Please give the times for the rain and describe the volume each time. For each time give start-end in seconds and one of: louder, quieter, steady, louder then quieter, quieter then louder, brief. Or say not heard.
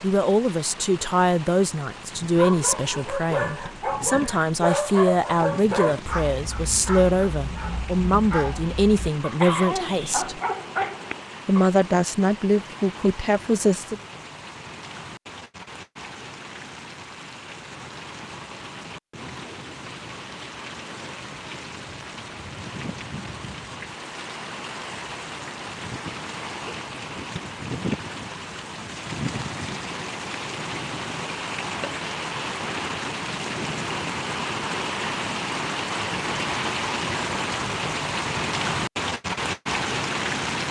0.0-40.6 louder.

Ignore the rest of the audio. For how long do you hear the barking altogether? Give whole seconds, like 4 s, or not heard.
9 s.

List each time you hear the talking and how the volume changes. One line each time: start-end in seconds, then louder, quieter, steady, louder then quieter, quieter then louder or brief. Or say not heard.
0.0-10.4 steady
11.4-14.0 brief.